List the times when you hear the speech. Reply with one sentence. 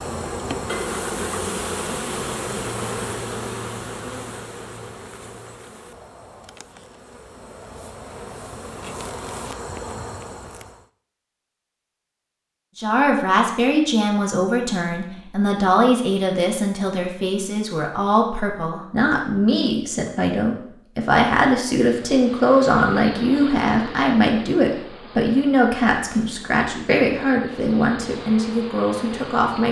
You can hear the speech from 12.8 to 29.6 s.